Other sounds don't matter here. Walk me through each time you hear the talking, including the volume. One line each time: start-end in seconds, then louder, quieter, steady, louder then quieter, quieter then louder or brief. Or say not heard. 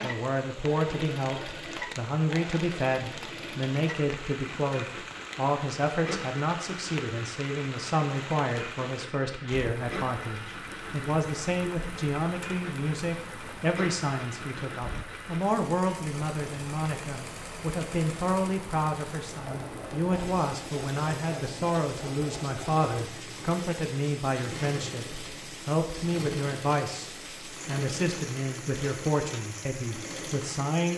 0.0-30.9 steady.